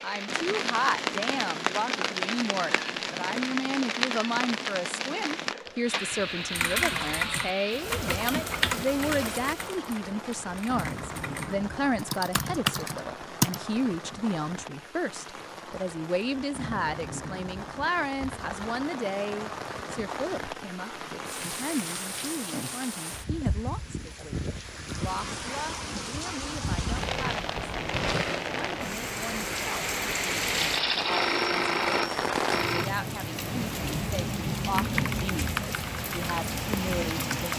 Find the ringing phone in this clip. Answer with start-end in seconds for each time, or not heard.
30.4-32.9.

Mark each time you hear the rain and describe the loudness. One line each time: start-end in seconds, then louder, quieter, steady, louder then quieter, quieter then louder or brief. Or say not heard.
0.0-37.5 quieter then louder.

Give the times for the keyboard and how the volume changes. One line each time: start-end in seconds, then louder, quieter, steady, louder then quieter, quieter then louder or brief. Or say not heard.
6.5-13.6 quieter then louder
34.7-37.5 brief.